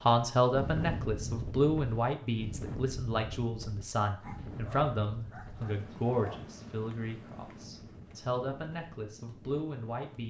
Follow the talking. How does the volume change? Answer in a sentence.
The volume of the talking goes down.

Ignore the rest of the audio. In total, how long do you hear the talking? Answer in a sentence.
The talking can be heard for 10 seconds in total.